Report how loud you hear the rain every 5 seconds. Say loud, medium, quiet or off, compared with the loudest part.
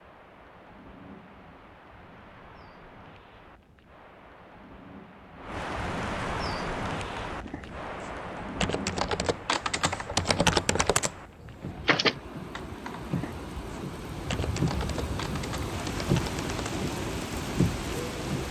quiet, medium, medium, loud.